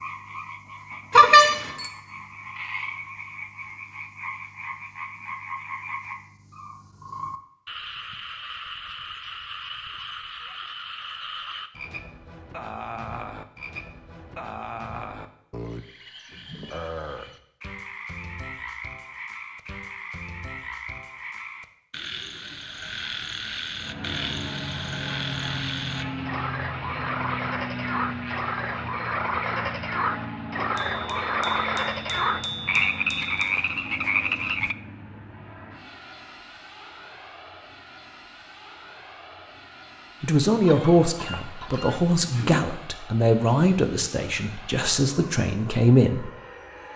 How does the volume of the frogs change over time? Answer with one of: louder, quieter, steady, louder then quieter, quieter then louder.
louder.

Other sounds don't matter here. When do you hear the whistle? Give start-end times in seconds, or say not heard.
not heard.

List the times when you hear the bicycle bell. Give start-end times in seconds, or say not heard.
1.1-1.9, 30.8-33.5.